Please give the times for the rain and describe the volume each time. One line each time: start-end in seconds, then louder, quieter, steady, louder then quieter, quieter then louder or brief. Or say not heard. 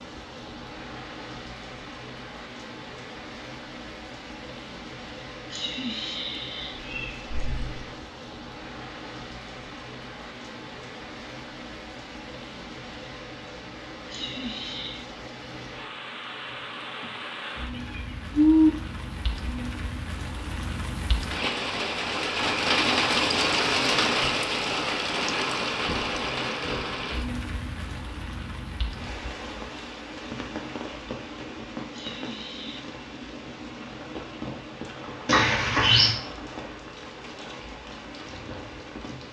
0.0-39.2 louder then quieter.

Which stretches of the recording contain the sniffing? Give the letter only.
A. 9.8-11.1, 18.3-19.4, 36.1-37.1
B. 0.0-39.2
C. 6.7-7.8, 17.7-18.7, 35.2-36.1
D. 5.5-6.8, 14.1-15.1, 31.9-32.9
D.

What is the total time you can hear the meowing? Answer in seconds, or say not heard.
3 s.